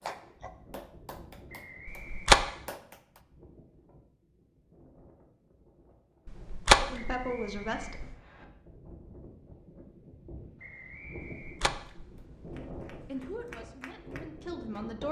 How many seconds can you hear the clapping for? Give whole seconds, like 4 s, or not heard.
6 s.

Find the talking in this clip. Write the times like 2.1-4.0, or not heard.
6.8-8.1, 13.1-15.0.